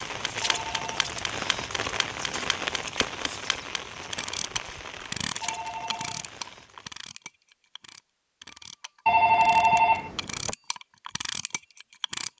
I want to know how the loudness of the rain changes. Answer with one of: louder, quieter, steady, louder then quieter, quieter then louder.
quieter.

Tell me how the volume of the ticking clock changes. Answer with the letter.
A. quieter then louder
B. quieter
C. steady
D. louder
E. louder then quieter
A.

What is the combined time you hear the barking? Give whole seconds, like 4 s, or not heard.
not heard.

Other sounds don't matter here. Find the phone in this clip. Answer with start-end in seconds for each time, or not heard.
0.4-0.9, 5.4-6.2, 9.1-10.6.